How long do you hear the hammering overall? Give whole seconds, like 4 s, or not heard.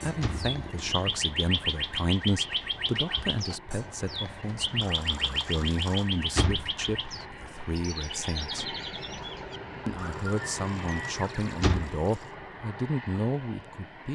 not heard.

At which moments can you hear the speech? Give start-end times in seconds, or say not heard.
0.0-8.7, 9.8-14.1.